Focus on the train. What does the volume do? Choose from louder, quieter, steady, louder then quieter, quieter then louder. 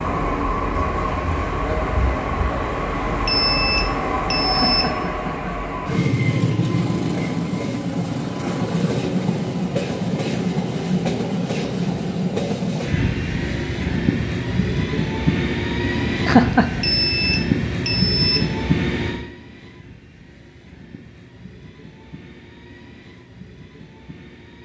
quieter.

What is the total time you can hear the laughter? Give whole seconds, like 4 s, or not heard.
2 s.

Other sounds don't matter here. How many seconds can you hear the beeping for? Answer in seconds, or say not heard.
4 s.